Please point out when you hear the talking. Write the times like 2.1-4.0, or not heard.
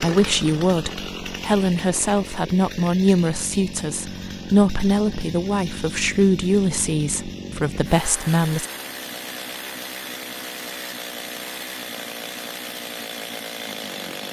0.0-8.7.